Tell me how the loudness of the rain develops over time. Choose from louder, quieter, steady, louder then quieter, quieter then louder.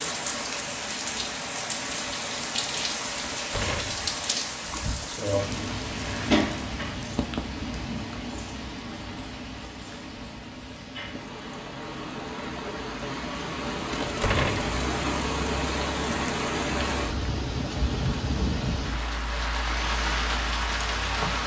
quieter then louder.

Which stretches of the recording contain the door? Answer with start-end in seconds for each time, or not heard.
3.2-4.0, 13.9-14.7.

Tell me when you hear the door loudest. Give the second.
14 s.